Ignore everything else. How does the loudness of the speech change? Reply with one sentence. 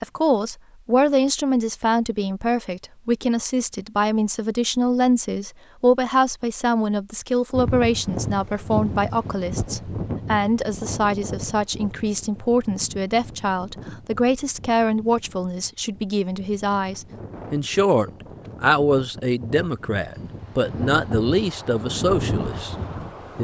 The volume of the speech stays about the same.